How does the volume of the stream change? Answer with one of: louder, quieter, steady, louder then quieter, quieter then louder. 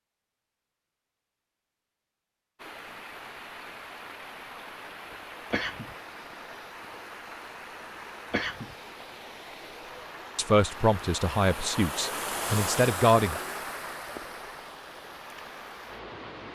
louder then quieter.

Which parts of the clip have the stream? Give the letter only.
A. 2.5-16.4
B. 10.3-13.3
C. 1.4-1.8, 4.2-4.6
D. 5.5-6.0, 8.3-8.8
A.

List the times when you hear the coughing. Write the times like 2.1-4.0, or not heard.
5.5-6.0, 8.3-8.8.